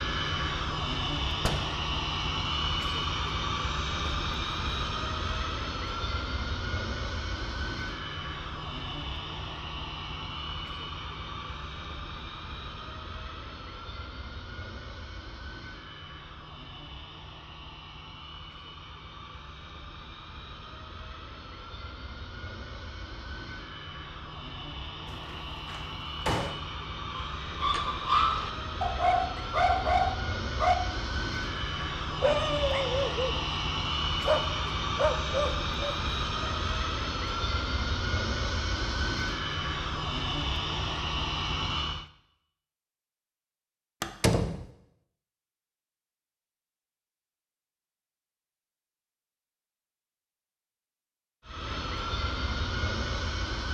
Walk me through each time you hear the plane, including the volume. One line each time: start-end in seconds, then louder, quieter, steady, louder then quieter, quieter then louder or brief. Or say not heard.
0.0-42.1 quieter then louder
51.5-53.6 brief.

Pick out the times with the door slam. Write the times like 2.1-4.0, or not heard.
1.4-1.8, 25.1-26.6, 44.0-44.6.